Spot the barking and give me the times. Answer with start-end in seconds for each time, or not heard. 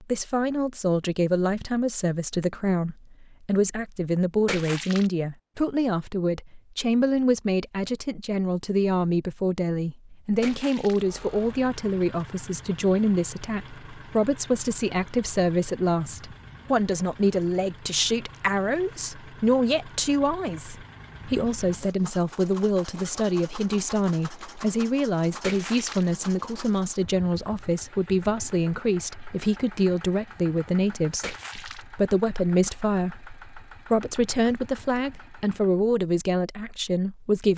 not heard.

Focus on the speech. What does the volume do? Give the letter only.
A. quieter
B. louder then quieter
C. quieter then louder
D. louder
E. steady
E.